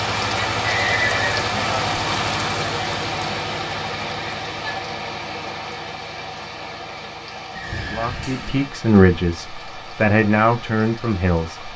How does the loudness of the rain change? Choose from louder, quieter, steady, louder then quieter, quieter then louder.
quieter.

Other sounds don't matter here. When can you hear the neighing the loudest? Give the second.
1 s.